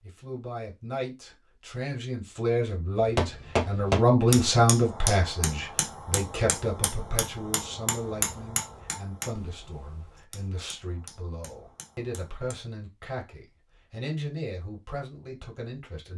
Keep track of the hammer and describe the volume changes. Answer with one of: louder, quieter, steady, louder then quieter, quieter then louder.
quieter.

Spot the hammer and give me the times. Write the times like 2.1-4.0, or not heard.
3.0-12.6.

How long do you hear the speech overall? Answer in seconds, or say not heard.
16 s.